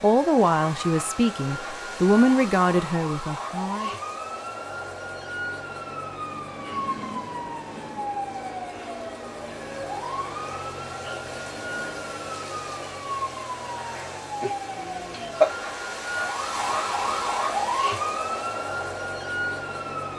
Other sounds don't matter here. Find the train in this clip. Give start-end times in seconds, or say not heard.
6.2-8.1.